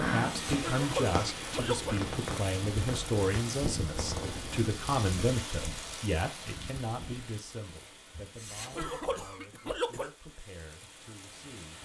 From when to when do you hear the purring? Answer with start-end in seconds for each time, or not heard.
0.0-5.0.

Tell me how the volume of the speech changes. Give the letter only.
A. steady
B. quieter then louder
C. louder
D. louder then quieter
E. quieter
E.